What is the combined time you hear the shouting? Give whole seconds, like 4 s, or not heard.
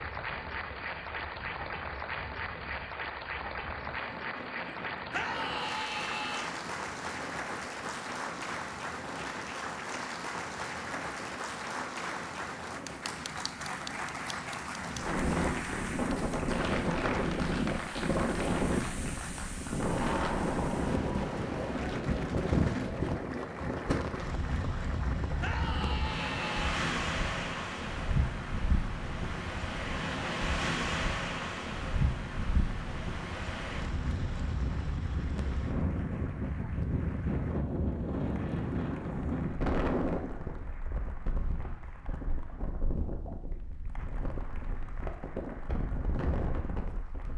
3 s.